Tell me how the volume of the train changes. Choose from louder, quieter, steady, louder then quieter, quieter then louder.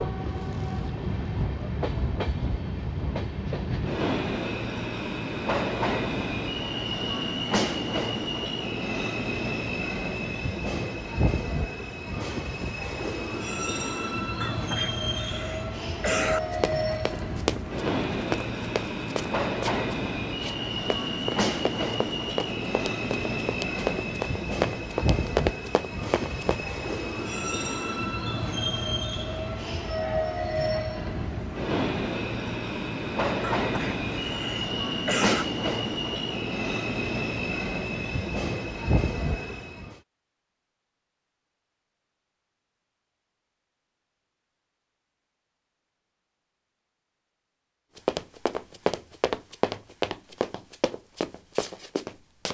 steady.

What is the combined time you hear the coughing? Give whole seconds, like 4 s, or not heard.
4 s.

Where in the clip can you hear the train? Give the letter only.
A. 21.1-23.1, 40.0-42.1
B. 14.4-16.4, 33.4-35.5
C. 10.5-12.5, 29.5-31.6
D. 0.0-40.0
D.